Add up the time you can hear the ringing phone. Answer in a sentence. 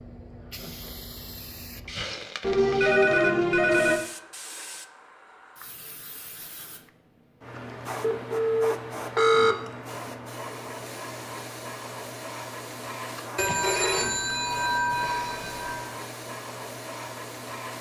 You can hear the ringing phone for 6 seconds altogether.